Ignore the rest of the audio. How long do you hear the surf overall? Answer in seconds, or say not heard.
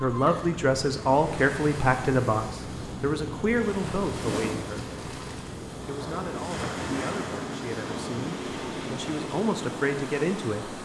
11 s.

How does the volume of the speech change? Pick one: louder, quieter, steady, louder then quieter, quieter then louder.
quieter then louder.